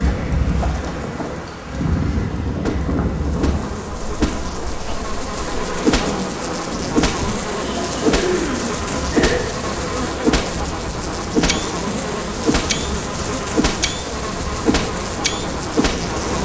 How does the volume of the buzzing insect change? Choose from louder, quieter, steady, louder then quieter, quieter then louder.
louder.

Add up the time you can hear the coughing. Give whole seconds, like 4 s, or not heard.
2 s.